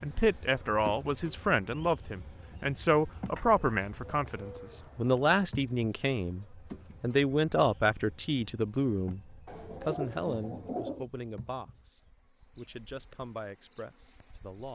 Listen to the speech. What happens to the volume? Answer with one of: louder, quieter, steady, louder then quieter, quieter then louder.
quieter.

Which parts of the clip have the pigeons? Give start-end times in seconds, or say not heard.
3.4-5.3, 9.4-11.1.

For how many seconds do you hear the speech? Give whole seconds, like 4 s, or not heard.
15 s.